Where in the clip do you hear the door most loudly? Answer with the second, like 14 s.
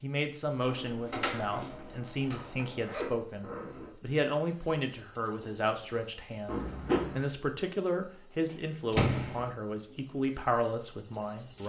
9 s.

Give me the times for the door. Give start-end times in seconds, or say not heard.
0.6-2.6, 8.9-9.5.